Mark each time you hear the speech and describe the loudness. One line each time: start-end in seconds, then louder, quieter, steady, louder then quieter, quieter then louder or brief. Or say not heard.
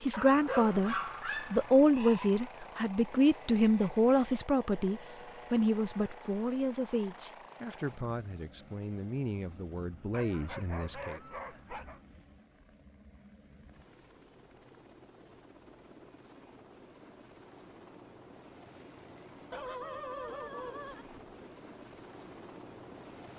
0.0-11.2 quieter.